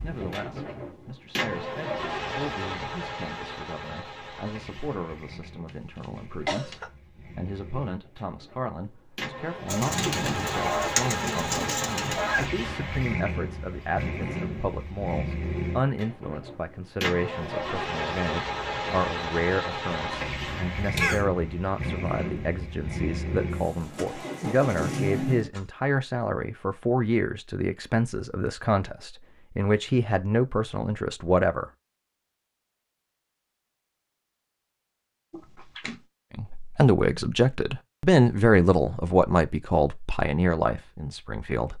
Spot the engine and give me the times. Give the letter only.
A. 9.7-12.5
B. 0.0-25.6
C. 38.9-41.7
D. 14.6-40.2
B.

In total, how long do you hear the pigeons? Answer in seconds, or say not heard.
3 s.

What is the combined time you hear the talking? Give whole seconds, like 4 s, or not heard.
37 s.